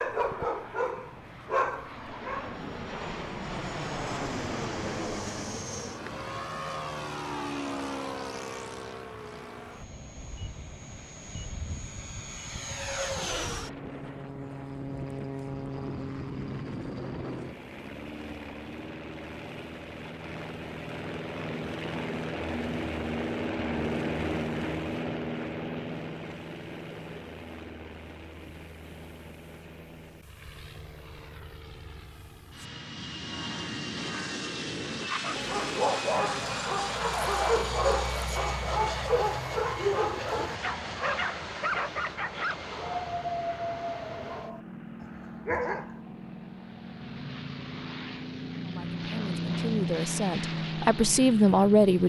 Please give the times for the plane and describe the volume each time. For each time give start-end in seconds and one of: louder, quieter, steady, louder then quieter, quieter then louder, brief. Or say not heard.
0.0-52.0 steady.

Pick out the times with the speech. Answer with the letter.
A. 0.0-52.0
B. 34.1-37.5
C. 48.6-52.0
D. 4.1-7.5
C.